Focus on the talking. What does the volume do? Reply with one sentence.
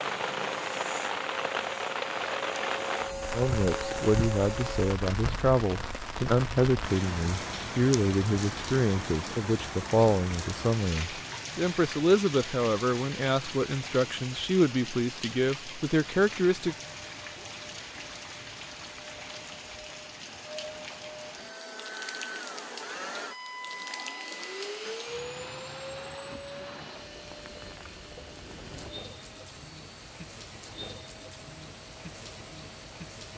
The volume of the talking stays about the same.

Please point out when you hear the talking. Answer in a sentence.
The talking can be heard from 3.3 to 16.8 s.